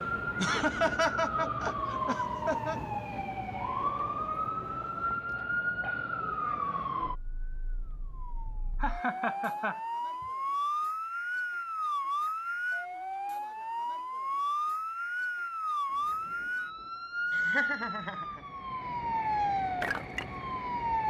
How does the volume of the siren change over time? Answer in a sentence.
The volume of the siren stays about the same.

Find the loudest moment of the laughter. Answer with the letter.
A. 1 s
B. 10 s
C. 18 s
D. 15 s
A.